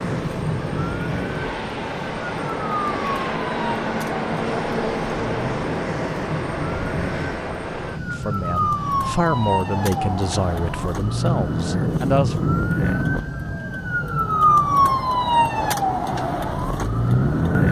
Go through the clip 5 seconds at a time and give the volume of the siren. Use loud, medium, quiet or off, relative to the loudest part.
medium, medium, loud, loud.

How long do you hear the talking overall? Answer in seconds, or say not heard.
4 s.